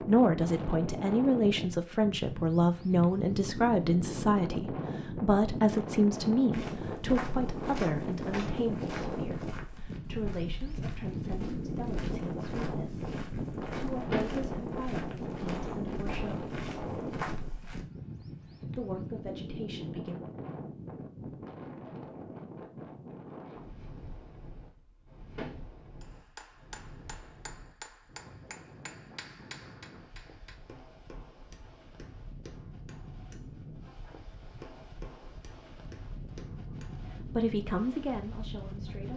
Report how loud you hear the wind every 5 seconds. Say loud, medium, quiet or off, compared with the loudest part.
loud, loud, loud, loud, medium, quiet, quiet, medium.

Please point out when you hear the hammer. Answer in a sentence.
You can hear the hammer from 26.0 to 37.1 s.